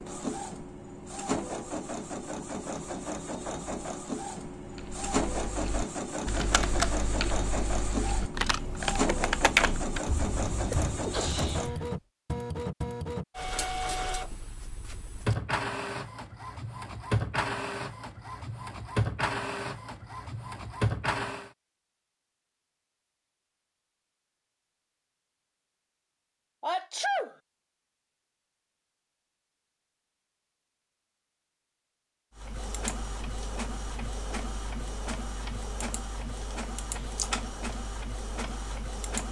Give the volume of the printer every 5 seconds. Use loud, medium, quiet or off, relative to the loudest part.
loud, loud, loud, loud, loud, off, medium, medium.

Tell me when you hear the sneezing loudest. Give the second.
27 s.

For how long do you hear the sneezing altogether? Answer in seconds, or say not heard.
2 s.